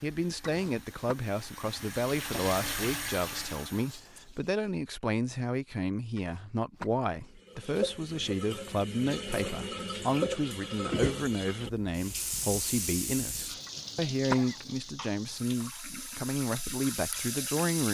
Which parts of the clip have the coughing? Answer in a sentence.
You can hear the coughing from 0.5 to 1.1 s, from 6.2 to 6.9 s and from 13.7 to 14.7 s.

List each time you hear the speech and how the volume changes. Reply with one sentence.
You can hear the speech from 0.0 to 17.8 s, at a steady volume.